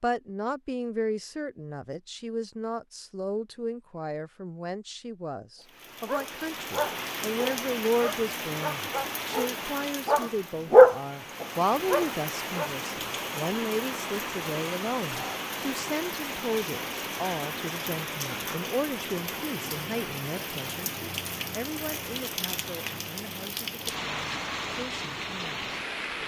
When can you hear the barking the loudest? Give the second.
11 s.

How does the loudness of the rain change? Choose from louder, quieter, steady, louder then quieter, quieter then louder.
steady.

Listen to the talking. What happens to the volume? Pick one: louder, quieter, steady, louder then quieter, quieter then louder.
quieter.